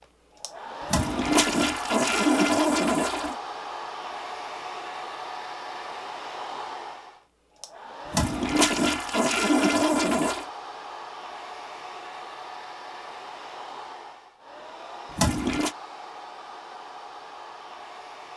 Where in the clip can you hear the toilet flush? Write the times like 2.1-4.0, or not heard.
0.9-3.4, 8.1-10.5, 15.1-15.8.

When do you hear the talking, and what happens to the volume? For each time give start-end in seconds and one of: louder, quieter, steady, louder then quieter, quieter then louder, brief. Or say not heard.
not heard.